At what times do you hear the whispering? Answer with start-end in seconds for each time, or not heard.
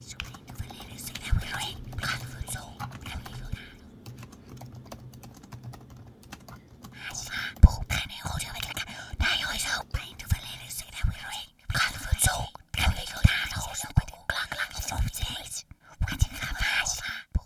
0.0-3.9, 7.0-17.4.